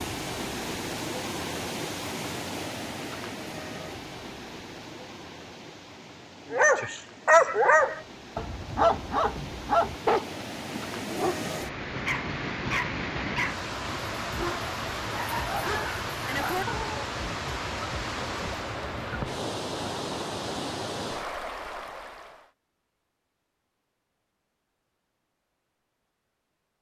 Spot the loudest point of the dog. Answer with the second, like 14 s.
7 s.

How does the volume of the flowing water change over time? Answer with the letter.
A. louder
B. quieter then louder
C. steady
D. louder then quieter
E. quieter
B.